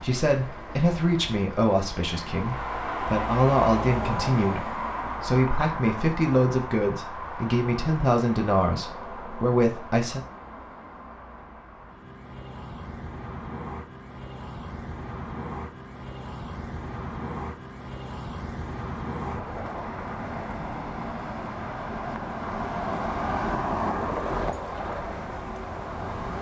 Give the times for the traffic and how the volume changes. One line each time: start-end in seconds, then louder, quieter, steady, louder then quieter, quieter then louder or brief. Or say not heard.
0.0-26.3 quieter then louder.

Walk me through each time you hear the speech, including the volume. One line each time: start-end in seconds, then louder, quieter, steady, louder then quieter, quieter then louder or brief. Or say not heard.
0.0-10.2 steady.